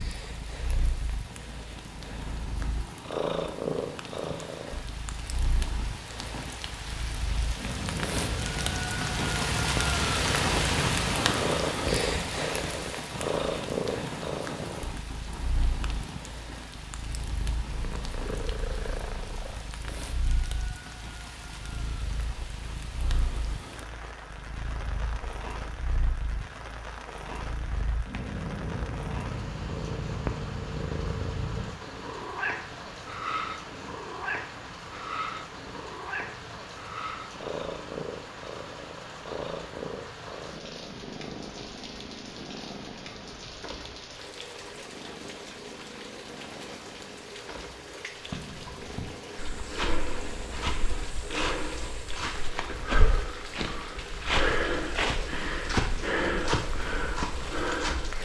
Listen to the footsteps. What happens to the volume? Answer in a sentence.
The loudness of the footsteps goes up.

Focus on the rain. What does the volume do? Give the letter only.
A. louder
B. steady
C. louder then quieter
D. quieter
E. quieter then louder
D.